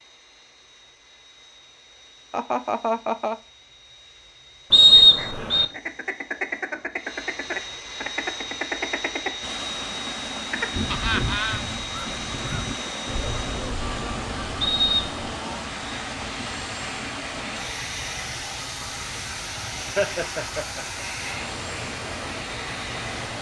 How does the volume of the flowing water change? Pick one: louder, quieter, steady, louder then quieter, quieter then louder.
steady.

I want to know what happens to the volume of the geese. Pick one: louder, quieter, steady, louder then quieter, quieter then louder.
quieter.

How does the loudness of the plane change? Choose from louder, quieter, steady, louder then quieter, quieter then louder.
louder.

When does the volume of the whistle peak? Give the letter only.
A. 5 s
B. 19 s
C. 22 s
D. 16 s
A.